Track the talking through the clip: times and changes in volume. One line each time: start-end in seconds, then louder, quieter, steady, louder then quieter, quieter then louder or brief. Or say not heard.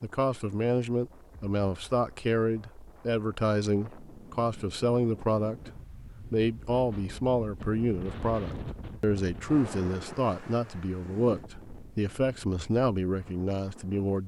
0.0-14.2 steady.